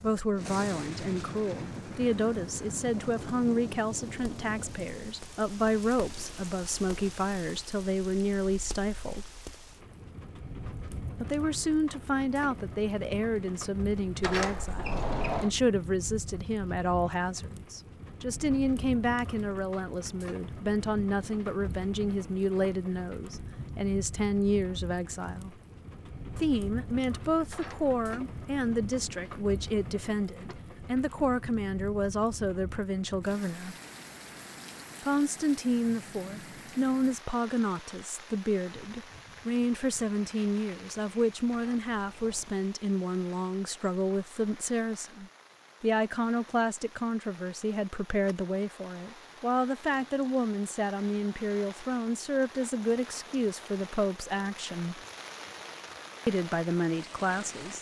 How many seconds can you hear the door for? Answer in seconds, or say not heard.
3 s.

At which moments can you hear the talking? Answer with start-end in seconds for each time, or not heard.
0.0-9.3, 11.2-25.6, 26.4-33.8, 35.0-55.0, 56.2-57.7.